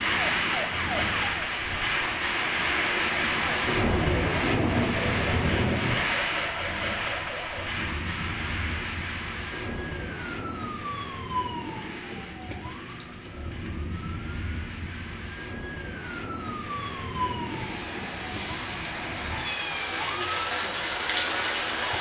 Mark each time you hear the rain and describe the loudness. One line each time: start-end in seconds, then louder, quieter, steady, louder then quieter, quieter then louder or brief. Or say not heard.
0.0-21.9 quieter then louder.